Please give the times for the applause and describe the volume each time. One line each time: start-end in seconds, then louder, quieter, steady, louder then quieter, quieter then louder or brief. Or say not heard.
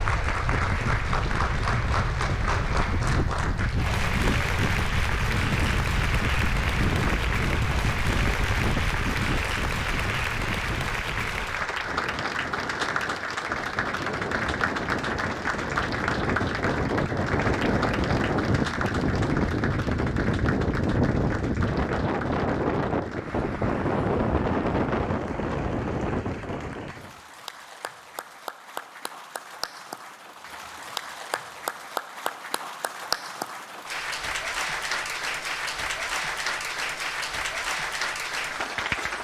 0.0-39.1 quieter then louder.